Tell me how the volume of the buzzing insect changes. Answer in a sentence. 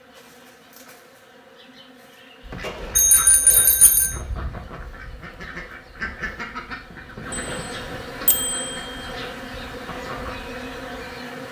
The volume of the buzzing insect goes up.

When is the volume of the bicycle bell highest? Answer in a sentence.
The loudest moment of the bicycle bell is at 3 seconds.